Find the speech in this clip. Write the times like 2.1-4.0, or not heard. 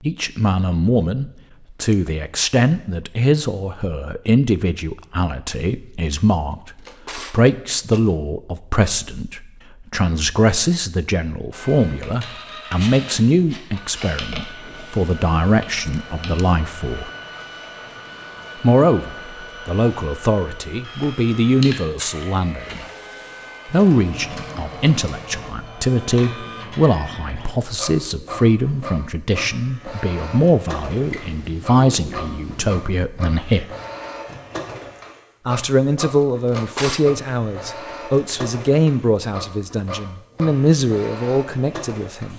0.0-17.1, 18.6-22.9, 23.6-33.6, 35.5-42.3.